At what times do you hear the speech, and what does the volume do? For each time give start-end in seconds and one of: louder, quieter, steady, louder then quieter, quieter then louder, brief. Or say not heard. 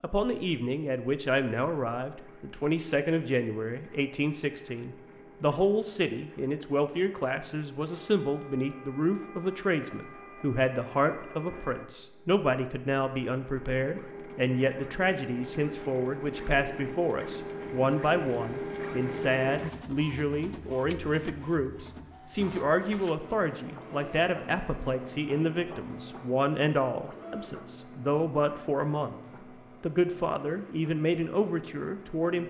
0.0-29.2 steady
29.8-32.4 brief.